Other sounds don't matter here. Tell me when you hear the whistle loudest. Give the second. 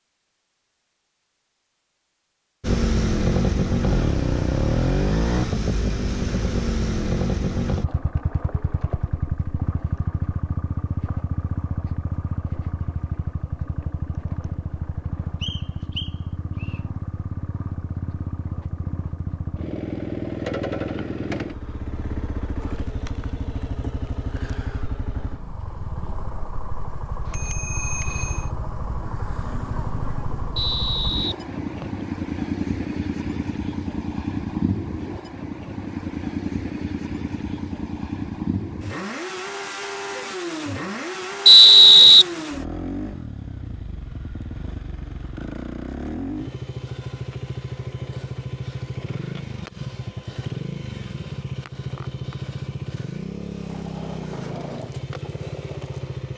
42 s.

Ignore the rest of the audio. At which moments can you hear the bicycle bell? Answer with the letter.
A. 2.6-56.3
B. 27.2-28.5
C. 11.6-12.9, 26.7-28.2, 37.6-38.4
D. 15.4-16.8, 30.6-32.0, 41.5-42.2
B.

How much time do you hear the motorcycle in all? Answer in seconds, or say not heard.
54 s.